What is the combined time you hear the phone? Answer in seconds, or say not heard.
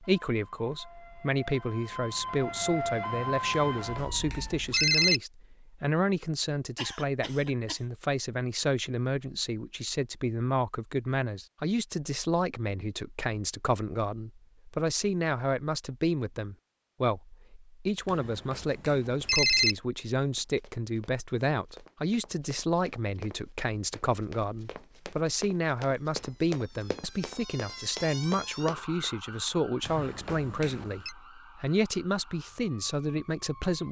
5 s.